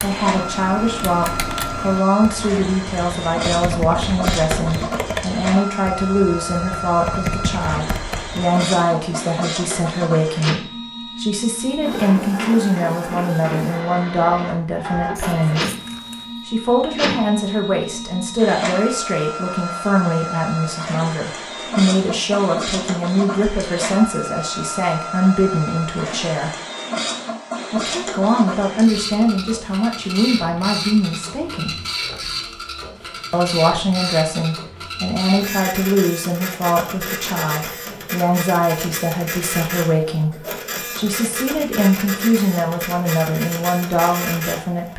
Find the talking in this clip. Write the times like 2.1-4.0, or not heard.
0.0-15.7, 16.4-26.5, 27.7-31.8, 33.3-44.9.